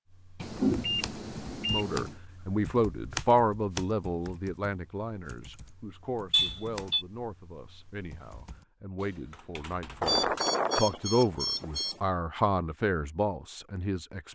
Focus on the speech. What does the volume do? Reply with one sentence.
The loudness of the speech goes down, then up.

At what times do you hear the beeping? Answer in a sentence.
The beeping can be heard from 0.4 to 2.1 s, from 6.3 to 7.0 s and from 10.0 to 12.0 s.